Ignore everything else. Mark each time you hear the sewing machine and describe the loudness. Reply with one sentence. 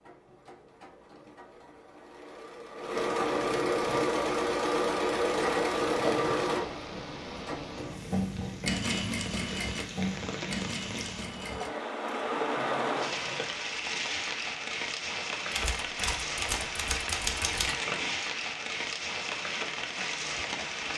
The sewing machine can be heard from 0.0 to 13.6 s, getting louder then quieter.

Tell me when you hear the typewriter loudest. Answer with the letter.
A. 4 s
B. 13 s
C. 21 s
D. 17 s
D.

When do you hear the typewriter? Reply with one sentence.
You can hear the typewriter from 15.5 to 17.8 s.